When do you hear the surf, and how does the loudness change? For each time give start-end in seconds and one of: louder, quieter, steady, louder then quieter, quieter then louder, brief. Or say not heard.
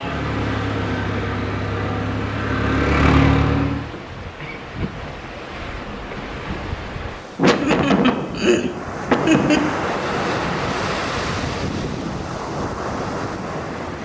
0.0-14.0 louder.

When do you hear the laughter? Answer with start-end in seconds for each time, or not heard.
7.3-9.7.